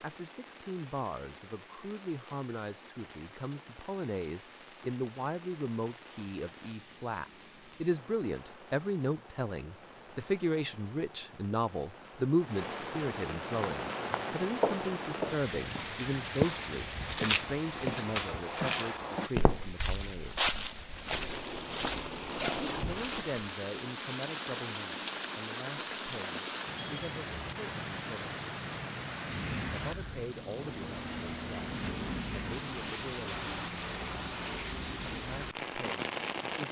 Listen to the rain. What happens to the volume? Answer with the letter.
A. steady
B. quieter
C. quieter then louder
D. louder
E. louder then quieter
D.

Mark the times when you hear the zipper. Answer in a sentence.
You can hear the zipper from 22.3 to 23.0 s.